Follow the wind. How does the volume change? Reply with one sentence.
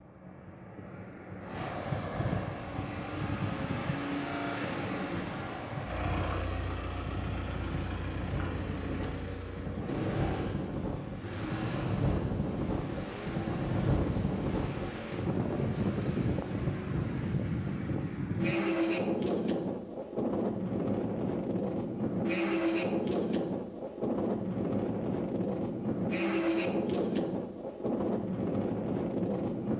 The volume of the wind goes up.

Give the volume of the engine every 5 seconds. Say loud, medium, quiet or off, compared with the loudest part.
loud, loud, loud, medium, off, off.